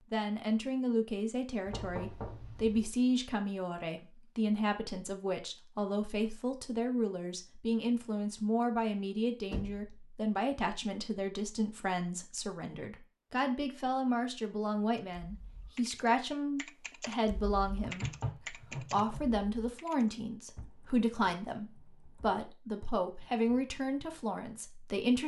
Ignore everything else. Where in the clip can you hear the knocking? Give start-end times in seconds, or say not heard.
1.6-2.9, 9.5-9.9, 17.8-19.3.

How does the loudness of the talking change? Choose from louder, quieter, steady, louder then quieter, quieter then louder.
steady.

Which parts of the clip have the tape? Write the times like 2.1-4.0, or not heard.
not heard.